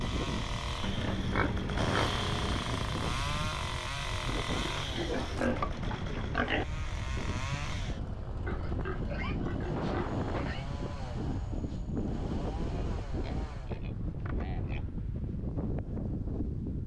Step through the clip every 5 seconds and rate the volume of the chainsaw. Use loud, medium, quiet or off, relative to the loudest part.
loud, medium, medium, off.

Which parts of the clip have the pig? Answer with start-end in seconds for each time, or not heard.
0.8-2.6, 4.7-6.7, 8.4-10.7, 13.2-14.9.